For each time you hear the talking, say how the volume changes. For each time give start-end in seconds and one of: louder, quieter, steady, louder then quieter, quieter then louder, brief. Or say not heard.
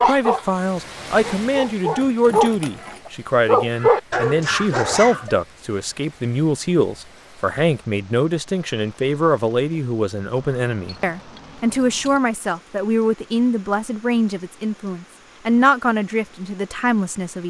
0.0-17.4 steady.